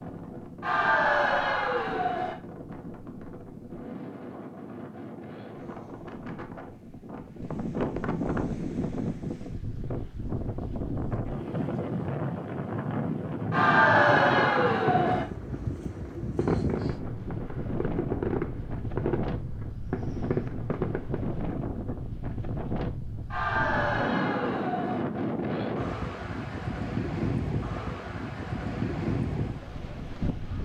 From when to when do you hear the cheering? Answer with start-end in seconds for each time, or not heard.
0.6-2.4, 13.5-15.2, 23.3-25.1.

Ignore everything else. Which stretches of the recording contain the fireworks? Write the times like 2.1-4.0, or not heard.
13.9-21.6.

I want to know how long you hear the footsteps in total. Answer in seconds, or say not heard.
not heard.